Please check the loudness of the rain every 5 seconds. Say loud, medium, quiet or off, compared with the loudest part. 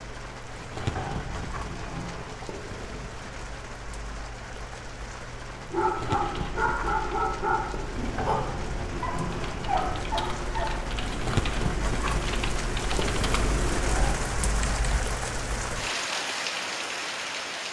medium, medium, loud, loud.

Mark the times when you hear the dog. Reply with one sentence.
You can hear the dog from 5.5 to 10.7 s.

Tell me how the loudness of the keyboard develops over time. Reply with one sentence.
The volume of the keyboard goes up.